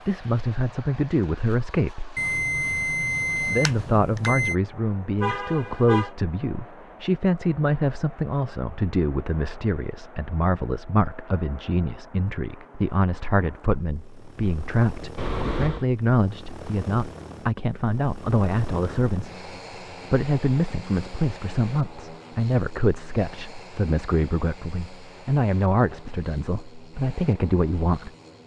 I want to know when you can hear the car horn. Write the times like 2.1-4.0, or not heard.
5.2-6.1, 15.2-15.8.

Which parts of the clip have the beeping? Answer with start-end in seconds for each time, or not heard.
2.1-4.5.